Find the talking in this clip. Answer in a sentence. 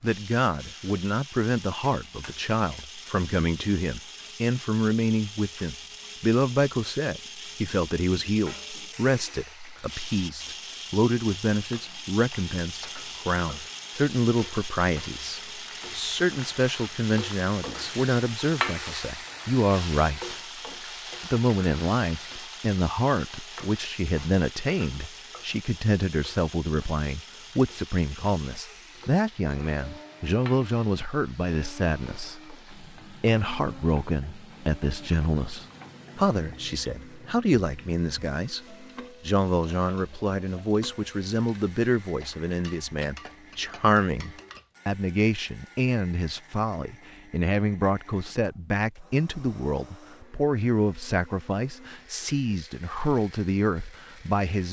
You can hear the talking from 0.0 to 20.4 s and from 21.2 to 54.6 s.